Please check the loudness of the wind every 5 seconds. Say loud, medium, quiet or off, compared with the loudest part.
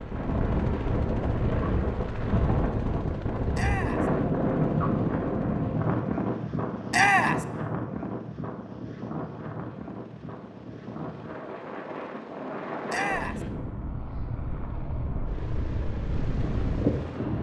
loud, loud, medium, loud.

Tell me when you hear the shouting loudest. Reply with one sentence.
The volume of the shouting peaks at 7 seconds.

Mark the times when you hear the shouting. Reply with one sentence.
The shouting can be heard from 3.5 to 4.1 s, from 6.9 to 7.5 s and from 12.8 to 13.4 s.